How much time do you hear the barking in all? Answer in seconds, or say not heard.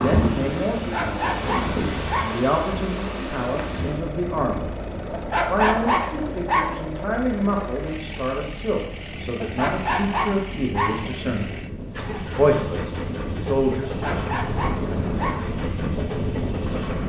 6 s.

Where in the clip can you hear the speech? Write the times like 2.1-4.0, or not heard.
0.0-4.7, 5.3-11.5, 12.3-14.2.